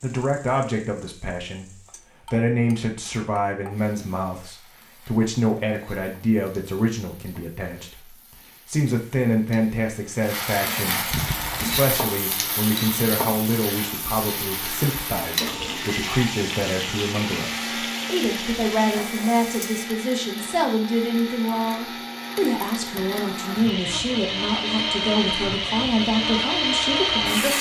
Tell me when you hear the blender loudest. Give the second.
27 s.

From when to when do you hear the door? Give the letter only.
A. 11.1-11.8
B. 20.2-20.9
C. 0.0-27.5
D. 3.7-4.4
A.